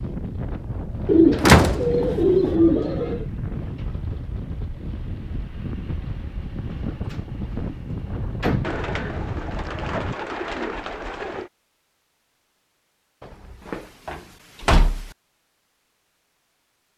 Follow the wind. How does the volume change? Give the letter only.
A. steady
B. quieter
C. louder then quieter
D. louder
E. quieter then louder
A.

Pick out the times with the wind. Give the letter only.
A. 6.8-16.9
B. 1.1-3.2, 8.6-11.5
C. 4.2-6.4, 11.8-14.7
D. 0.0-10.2
D.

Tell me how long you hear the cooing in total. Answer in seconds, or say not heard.
5 s.